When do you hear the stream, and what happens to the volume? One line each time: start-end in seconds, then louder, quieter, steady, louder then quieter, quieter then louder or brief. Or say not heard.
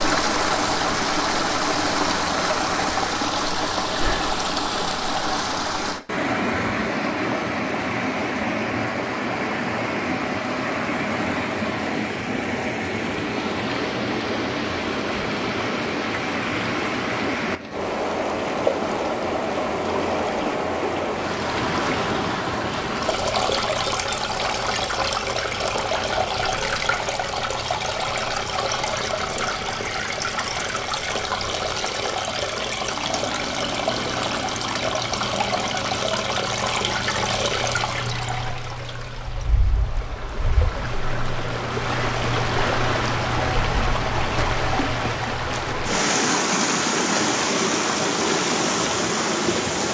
0.0-49.8 steady.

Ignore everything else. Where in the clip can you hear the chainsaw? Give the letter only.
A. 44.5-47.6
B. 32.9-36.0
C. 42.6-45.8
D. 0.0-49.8
B.